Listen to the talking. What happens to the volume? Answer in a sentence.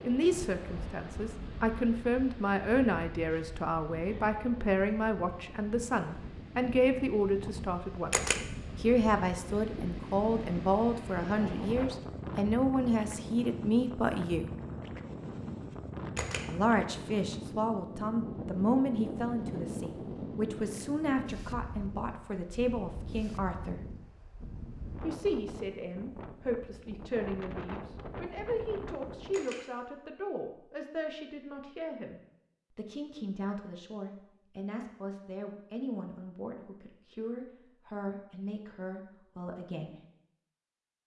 The volume of the talking goes down.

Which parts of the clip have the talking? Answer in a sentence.
You can hear the talking from 0.0 to 14.5 s, from 16.4 to 23.8 s and from 25.0 to 40.0 s.